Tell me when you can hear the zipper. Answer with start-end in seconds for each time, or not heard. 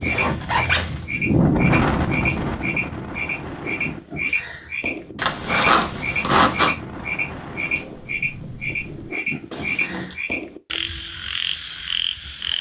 0.0-1.1, 5.2-6.8, 9.5-10.2.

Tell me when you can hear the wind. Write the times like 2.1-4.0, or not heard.
0.0-9.1.